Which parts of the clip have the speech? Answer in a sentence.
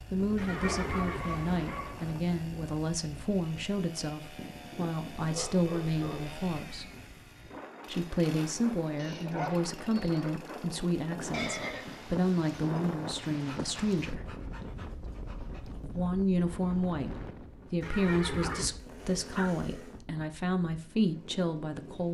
You can hear the speech from 0.1 to 6.9 s, from 7.9 to 14.3 s and from 15.8 to 22.0 s.